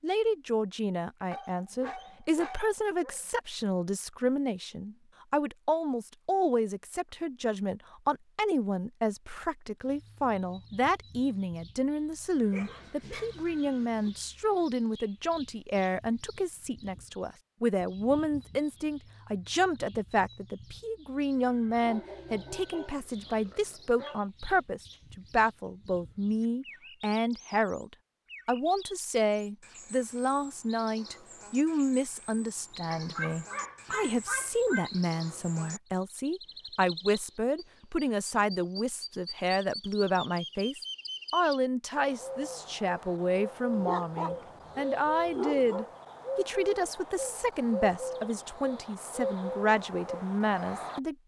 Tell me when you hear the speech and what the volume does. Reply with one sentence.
The speech can be heard from 0.0 to 51.1 s, at a steady volume.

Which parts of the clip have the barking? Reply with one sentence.
You can hear the barking from 1.3 to 3.2 s, from 12.5 to 14.1 s, from 21.8 to 24.2 s, from 32.9 to 34.9 s and from 43.7 to 45.9 s.